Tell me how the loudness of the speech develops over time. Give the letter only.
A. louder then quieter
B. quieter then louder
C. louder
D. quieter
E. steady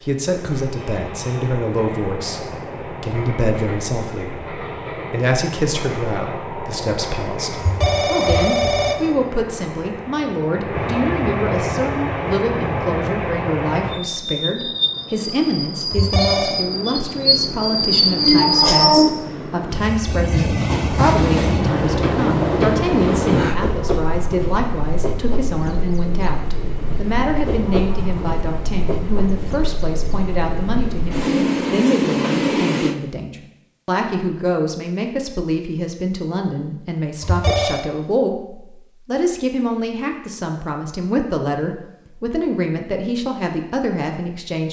E.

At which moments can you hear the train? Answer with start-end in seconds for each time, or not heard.
0.0-33.0.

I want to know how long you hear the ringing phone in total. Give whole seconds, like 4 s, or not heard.
3 s.